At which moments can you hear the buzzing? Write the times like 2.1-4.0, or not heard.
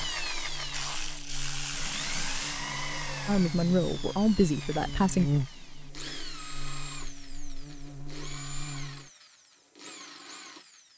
0.0-9.1.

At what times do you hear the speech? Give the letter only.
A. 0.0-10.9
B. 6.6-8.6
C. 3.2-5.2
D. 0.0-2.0
C.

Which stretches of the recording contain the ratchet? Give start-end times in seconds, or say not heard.
0.7-2.6.